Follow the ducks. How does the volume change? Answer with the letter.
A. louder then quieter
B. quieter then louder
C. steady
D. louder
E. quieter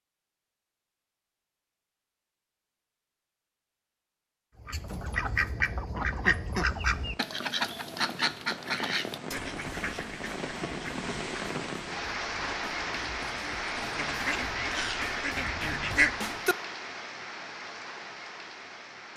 B.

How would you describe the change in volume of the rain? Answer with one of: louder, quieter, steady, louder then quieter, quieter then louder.
louder then quieter.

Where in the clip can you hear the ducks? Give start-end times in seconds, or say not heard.
4.6-16.6.